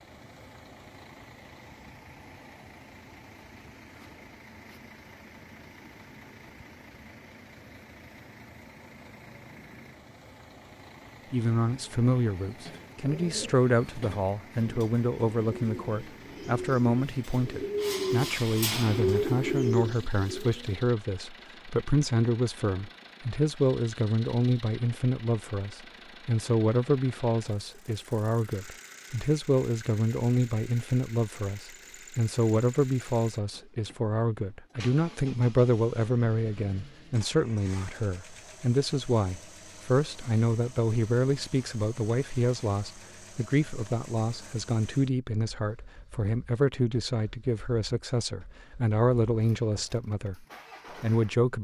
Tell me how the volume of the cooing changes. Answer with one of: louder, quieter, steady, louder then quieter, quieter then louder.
louder.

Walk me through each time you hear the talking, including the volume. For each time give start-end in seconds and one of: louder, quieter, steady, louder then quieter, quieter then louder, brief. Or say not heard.
11.3-51.5 steady.